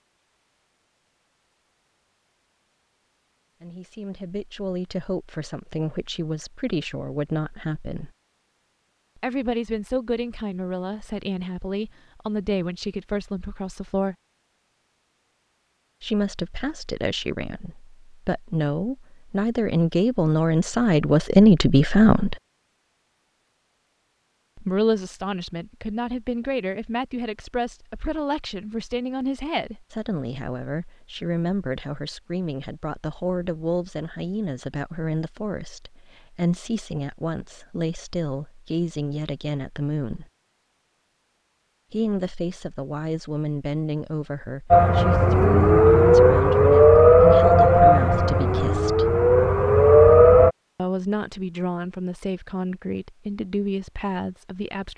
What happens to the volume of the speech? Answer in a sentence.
The volume of the speech goes up, then down.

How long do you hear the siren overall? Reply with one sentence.
You can hear the siren for 6 seconds altogether.